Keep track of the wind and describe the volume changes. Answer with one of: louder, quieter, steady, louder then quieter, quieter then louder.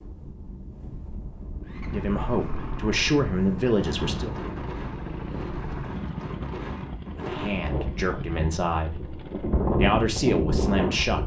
louder.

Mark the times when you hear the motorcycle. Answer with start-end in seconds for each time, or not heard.
1.6-9.7.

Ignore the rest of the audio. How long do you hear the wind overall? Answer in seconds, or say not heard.
11 s.